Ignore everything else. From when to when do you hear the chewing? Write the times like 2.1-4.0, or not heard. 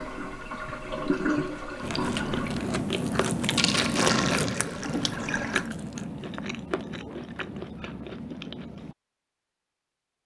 1.8-8.9.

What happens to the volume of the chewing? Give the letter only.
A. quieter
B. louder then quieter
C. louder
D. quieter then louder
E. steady
A.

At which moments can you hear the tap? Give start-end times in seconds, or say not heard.
0.0-5.7.